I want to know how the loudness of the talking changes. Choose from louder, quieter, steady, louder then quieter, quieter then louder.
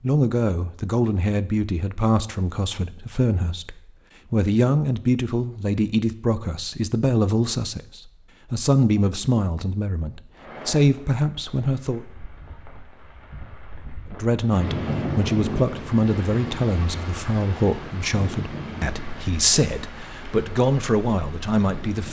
steady.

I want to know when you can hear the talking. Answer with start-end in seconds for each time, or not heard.
0.0-12.0, 14.1-22.0.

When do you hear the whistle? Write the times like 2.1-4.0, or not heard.
not heard.